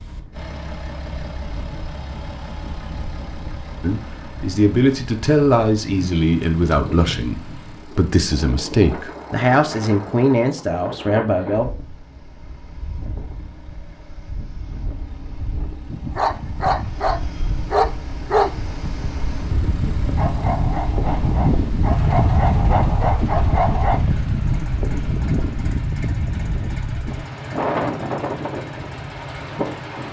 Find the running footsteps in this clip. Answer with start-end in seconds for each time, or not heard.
not heard.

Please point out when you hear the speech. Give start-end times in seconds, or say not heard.
3.8-11.7.